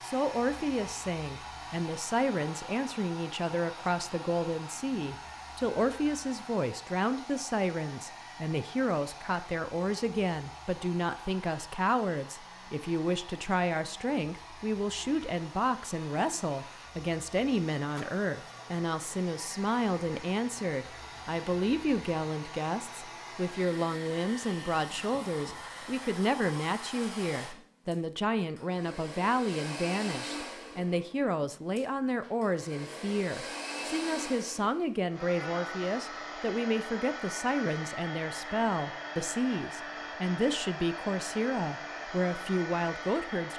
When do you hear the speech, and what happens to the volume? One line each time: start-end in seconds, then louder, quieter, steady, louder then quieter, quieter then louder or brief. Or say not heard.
0.0-43.5 steady.